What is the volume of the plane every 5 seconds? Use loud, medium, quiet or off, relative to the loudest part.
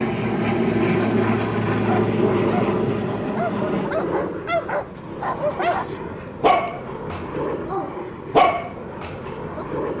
loud, medium.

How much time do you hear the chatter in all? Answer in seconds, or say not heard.
not heard.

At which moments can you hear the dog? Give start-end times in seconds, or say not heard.
1.3-9.7.